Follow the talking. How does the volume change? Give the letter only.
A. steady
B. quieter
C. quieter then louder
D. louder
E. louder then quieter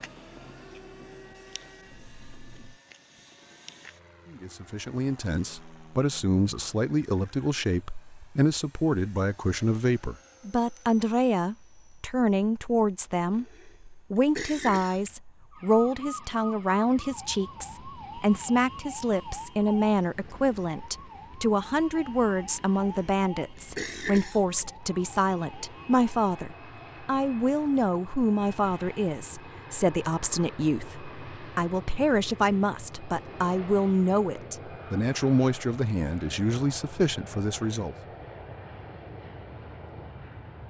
A.